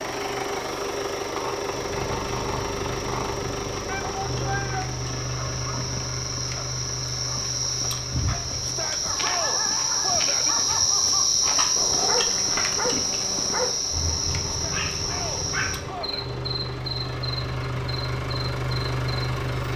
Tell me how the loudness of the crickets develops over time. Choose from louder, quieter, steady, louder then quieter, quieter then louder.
louder then quieter.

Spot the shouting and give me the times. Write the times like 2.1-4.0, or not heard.
3.9-4.9, 8.6-10.6, 14.5-16.3.